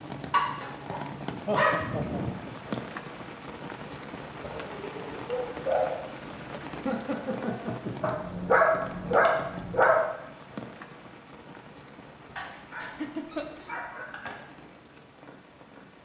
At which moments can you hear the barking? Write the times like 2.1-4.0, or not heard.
0.3-2.3, 4.4-6.0, 8.0-10.0, 12.3-14.3.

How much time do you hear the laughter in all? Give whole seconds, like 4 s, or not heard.
4 s.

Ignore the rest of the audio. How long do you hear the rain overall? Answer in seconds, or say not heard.
16 s.